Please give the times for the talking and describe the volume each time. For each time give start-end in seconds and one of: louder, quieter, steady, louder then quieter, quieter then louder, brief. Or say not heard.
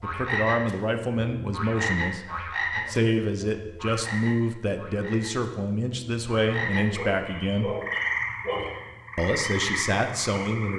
0.0-7.8 steady
9.2-10.7 brief.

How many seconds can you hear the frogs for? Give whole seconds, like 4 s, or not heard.
11 s.